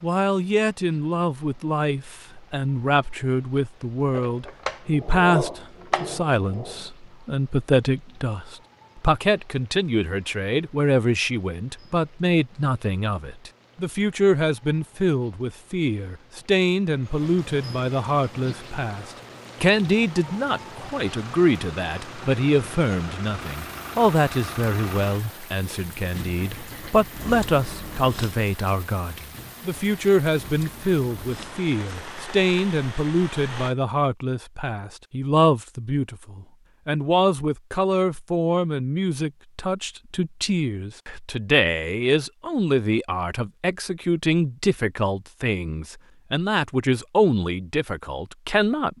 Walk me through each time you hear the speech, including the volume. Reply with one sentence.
You can hear the speech from 0.0 to 48.9 s, at a steady volume.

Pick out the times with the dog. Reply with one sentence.
The dog can be heard from 4.1 to 6.9 s.